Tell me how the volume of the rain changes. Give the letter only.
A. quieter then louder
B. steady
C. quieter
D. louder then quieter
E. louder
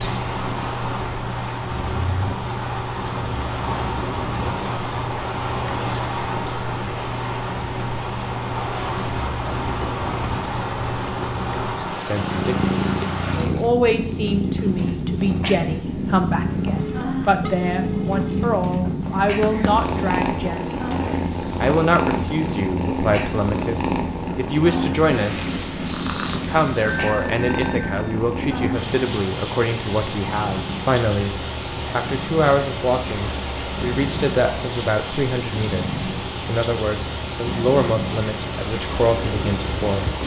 B.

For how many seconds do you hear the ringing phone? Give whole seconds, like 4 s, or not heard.
3 s.